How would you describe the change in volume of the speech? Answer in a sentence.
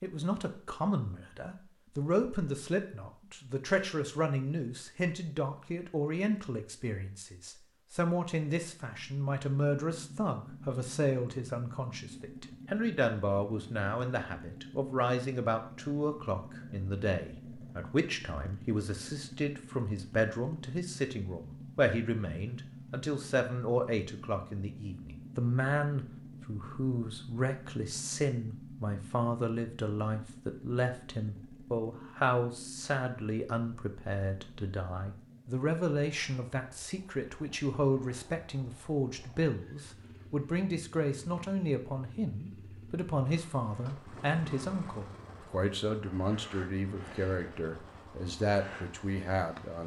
The loudness of the speech stays about the same.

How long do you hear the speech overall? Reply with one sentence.
You can hear the speech for 50 seconds altogether.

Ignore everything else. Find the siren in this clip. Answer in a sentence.
You can't hear the siren here.